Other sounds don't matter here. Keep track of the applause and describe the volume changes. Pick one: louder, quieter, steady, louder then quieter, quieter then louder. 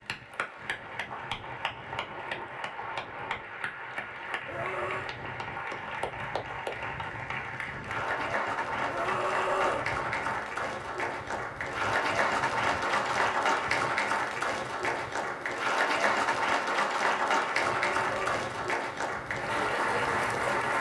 louder.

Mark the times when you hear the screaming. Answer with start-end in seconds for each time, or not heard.
4.5-5.2, 8.8-9.9, 17.7-18.4.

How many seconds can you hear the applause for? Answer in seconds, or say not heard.
21 s.